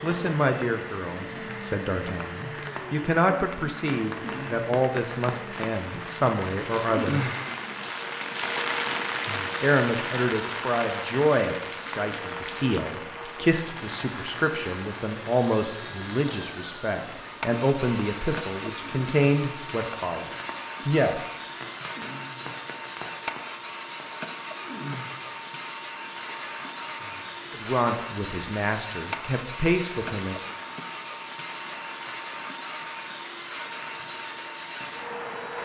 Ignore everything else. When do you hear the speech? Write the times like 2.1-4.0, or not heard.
0.0-7.2, 9.6-21.2, 27.5-30.4.